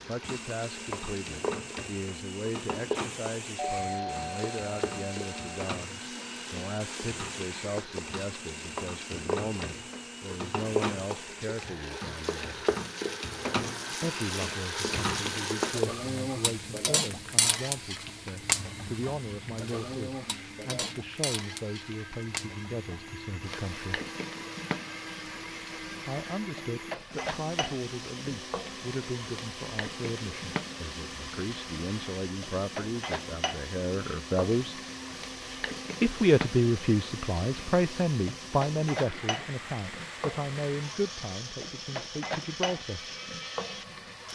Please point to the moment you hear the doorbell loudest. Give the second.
4 s.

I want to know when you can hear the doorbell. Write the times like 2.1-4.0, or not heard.
3.5-5.6.